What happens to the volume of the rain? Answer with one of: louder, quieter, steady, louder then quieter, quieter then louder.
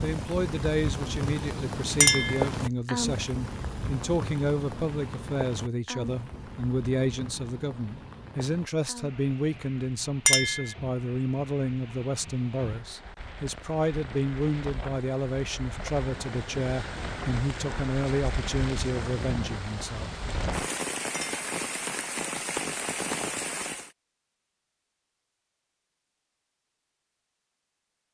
quieter then louder.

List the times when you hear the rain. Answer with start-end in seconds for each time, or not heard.
0.0-23.9.